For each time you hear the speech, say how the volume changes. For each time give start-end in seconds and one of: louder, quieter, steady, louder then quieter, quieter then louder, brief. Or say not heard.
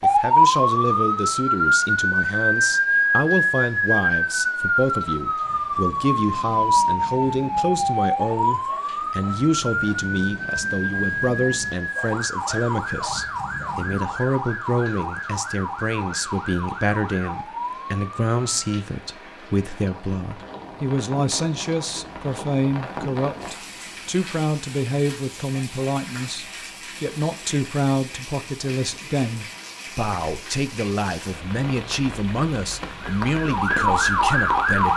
0.0-34.9 steady.